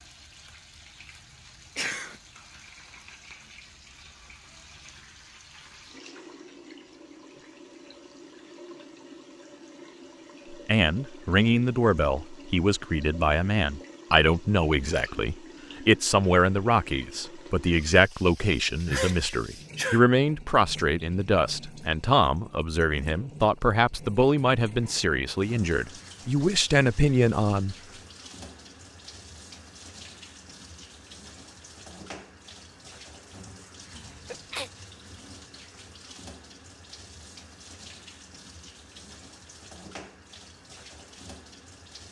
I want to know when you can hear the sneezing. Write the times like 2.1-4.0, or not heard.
1.8-2.2, 18.9-20.1, 33.9-34.7.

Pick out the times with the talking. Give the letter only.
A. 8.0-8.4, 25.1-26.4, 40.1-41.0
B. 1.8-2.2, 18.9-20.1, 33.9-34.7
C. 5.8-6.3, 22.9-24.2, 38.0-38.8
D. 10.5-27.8
D.